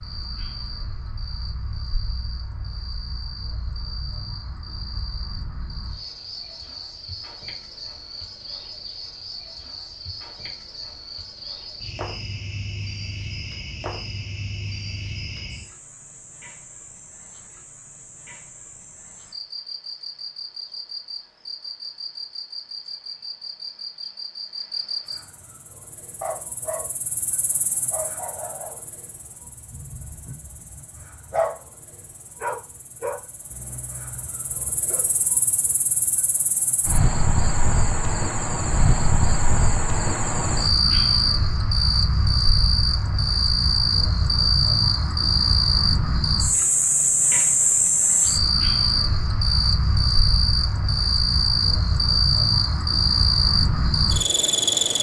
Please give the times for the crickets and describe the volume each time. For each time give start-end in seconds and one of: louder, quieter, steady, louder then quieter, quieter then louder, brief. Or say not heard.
0.0-54.9 louder.